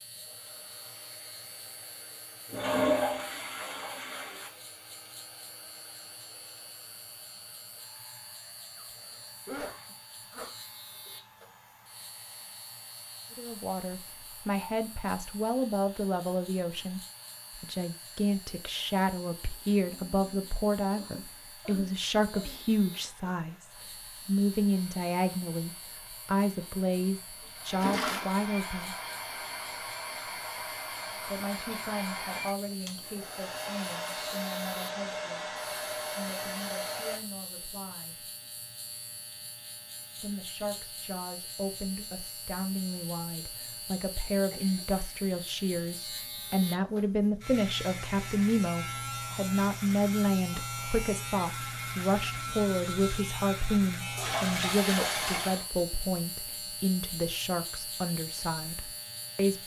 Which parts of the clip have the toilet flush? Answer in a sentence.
The toilet flush can be heard from 2.5 to 4.5 s, from 27.7 to 28.2 s and from 54.1 to 55.6 s.